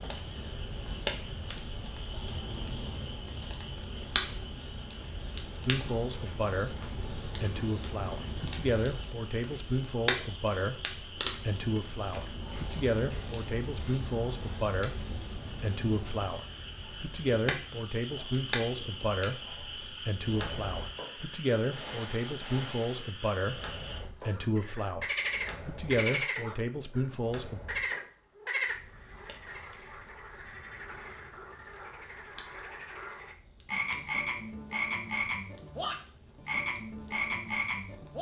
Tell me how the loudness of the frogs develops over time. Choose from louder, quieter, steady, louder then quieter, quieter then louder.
louder.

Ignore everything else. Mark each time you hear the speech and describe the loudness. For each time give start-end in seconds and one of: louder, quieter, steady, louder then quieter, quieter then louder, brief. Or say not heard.
5.5-27.6 steady.